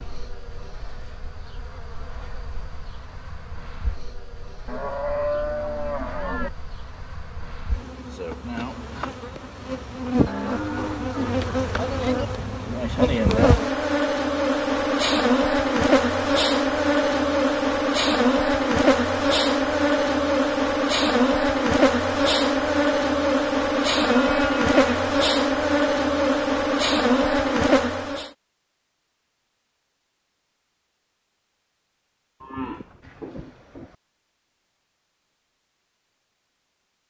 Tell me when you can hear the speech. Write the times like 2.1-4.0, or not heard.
not heard.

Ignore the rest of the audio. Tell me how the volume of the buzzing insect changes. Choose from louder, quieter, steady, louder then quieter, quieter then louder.
louder.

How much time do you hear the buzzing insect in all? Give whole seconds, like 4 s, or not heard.
28 s.